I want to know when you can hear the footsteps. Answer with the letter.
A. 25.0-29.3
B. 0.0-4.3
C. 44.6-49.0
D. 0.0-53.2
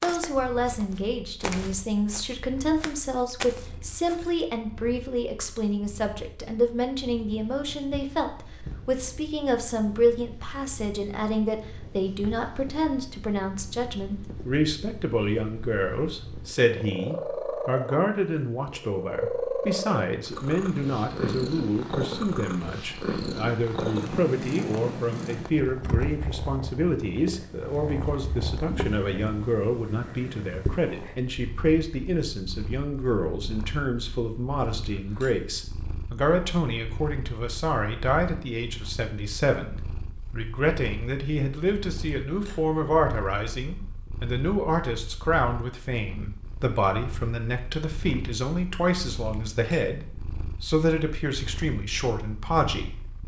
B.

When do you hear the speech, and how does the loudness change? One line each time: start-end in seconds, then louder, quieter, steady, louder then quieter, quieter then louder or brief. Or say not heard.
0.0-53.2 steady.